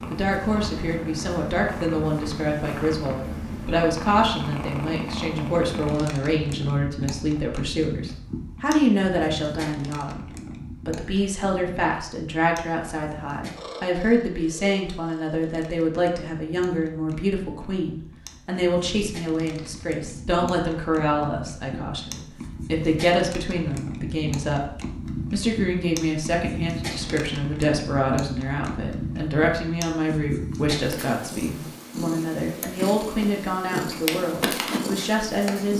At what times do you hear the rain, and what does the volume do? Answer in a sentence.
The rain can't be heard in this clip.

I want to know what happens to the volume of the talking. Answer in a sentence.
The loudness of the talking stays about the same.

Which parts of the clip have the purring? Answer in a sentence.
You can hear the purring from 0.0 to 35.7 s.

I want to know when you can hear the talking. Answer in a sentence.
The talking can be heard from 0.0 to 35.7 s.